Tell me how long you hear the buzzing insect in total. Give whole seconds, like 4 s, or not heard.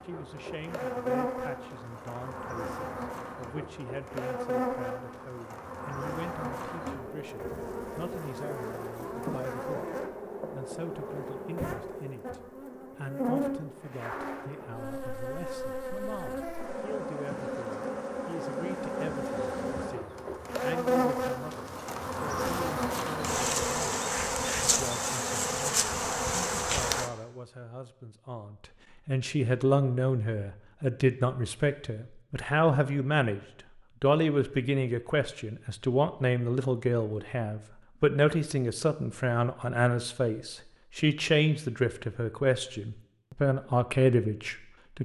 27 s.